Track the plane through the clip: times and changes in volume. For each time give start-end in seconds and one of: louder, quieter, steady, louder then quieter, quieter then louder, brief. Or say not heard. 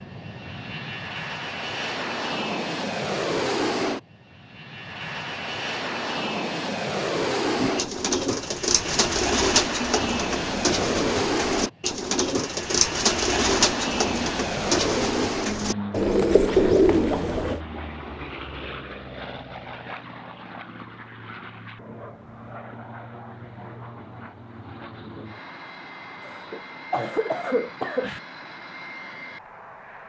0.0-30.0 quieter.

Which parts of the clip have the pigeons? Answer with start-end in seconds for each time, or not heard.
7.5-17.6.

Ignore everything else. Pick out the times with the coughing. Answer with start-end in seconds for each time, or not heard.
26.2-28.2.